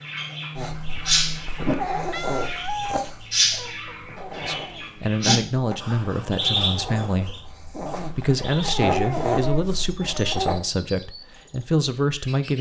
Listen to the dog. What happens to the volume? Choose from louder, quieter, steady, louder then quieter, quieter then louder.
quieter then louder.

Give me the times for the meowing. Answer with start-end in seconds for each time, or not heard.
1.9-3.2.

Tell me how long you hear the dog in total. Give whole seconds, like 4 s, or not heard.
10 s.